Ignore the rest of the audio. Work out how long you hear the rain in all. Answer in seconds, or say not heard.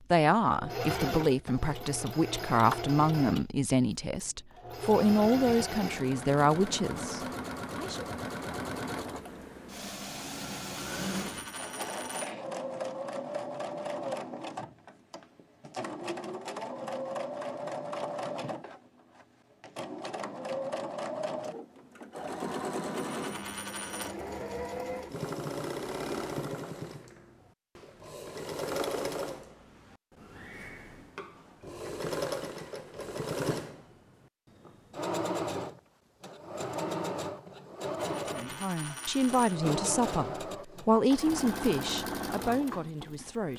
not heard.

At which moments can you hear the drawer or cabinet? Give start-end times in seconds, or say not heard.
not heard.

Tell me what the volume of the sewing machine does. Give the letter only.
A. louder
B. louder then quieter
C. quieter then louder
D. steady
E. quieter
D.